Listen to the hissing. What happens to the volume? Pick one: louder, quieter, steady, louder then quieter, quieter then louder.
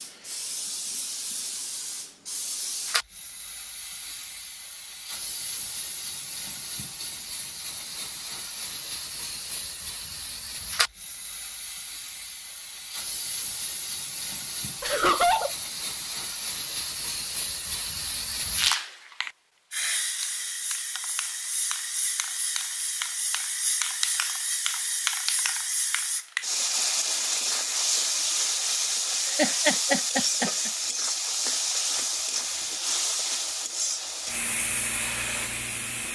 louder.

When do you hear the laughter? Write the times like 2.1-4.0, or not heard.
14.8-15.5, 29.4-30.7.